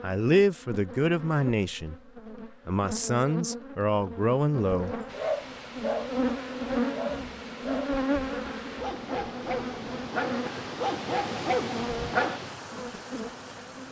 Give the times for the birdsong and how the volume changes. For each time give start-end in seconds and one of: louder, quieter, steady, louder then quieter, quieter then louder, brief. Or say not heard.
not heard.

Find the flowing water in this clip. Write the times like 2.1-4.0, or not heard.
5.0-13.8.